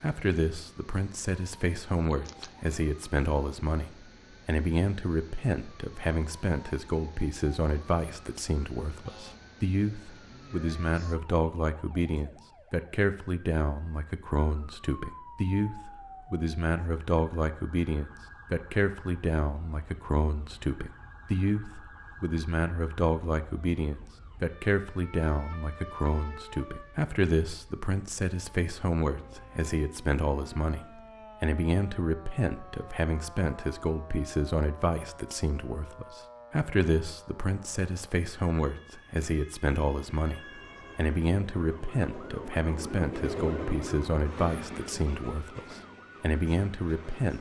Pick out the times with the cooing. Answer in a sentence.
You can't hear the cooing here.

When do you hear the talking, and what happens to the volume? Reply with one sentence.
You can hear the talking from 0.0 to 47.3 s, at a steady volume.